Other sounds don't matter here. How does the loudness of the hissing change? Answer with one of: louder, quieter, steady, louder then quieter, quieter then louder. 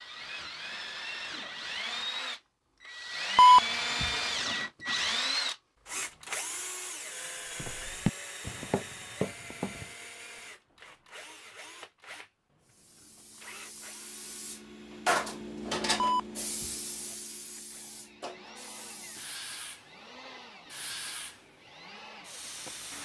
louder then quieter.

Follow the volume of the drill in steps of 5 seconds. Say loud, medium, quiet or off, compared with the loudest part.
loud, loud, quiet, quiet, quiet.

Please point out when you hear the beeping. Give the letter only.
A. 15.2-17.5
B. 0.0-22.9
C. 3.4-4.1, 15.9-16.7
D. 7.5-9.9
C.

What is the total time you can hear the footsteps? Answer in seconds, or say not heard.
2 s.